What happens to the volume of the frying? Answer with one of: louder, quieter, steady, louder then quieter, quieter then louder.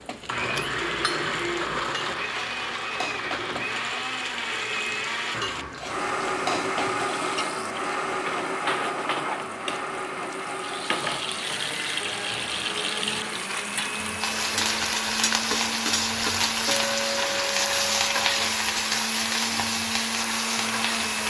louder.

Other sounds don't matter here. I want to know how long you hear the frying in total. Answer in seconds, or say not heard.
21 s.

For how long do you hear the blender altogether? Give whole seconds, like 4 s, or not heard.
21 s.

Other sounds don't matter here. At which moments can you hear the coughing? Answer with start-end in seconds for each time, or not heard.
not heard.